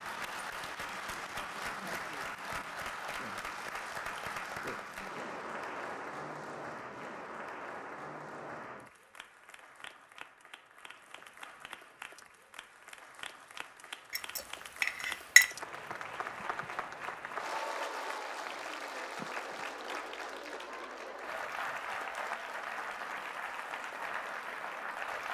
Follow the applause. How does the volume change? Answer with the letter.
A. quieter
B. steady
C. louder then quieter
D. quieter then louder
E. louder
D.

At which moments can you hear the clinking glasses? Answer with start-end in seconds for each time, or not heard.
14.1-15.4.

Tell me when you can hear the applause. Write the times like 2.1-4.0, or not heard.
0.0-25.2.